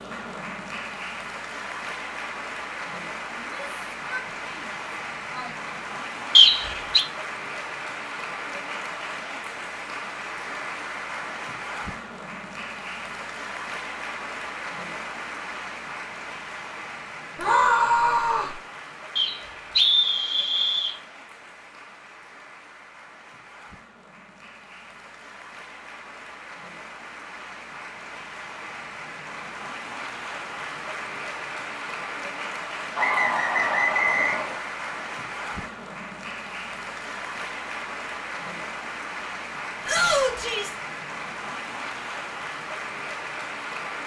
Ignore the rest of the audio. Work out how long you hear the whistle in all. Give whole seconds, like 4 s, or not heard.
4 s.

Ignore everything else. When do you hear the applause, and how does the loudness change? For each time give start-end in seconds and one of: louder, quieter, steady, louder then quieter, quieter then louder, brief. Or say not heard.
0.0-44.0 quieter then louder.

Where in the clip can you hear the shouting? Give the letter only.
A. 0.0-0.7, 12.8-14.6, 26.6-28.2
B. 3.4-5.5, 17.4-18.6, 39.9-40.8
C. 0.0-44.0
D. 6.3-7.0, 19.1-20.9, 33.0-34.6
B.